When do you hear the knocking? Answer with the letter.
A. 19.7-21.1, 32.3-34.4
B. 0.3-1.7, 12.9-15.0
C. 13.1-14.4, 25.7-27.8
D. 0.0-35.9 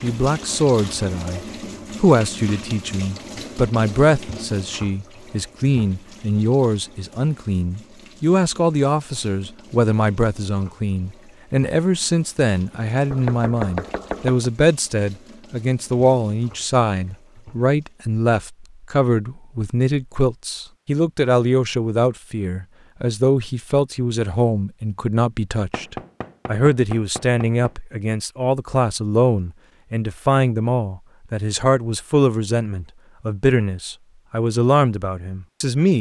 C.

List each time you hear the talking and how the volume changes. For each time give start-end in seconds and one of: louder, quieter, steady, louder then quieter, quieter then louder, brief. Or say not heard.
0.0-35.9 steady.